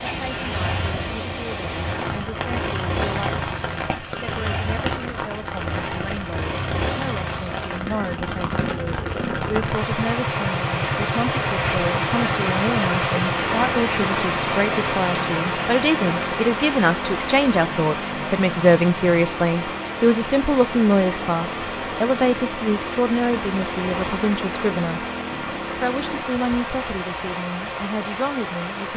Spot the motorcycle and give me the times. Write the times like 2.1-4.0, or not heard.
0.0-26.2.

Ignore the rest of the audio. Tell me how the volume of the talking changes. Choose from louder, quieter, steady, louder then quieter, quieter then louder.
louder then quieter.